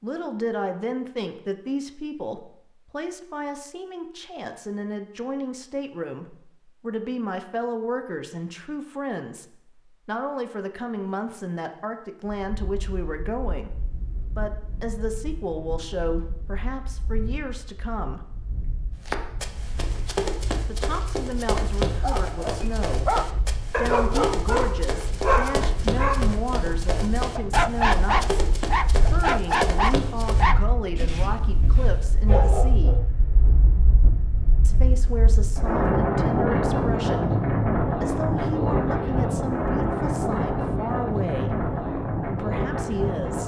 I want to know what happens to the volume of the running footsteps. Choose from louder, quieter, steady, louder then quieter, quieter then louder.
steady.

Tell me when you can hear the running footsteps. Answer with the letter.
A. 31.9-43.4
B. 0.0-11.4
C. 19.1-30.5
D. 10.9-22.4
C.